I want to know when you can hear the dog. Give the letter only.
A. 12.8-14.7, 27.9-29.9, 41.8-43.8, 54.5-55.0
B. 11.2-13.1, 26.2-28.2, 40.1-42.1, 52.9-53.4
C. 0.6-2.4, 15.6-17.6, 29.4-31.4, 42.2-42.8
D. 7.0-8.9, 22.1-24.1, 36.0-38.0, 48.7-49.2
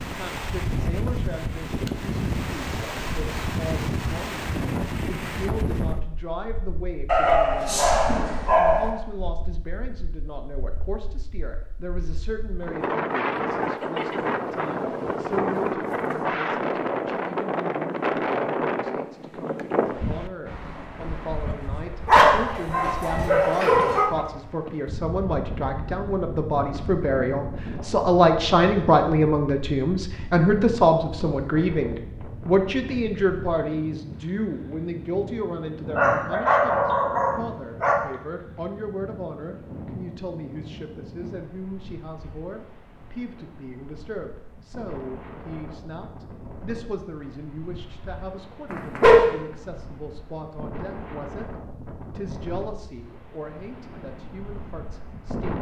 D.